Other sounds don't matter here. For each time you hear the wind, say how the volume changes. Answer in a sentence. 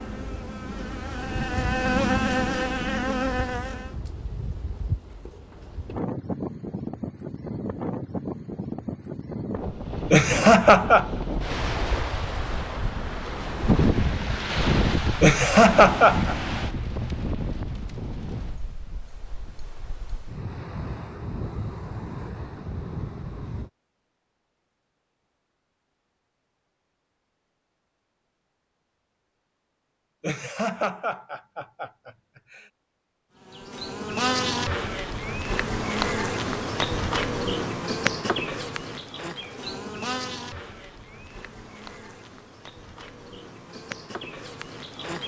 You can hear the wind from 0.0 to 23.7 s, getting louder then quieter.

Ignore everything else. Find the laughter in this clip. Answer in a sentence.
You can hear the laughter from 10.1 to 11.1 s, from 15.2 to 16.4 s and from 30.2 to 32.6 s.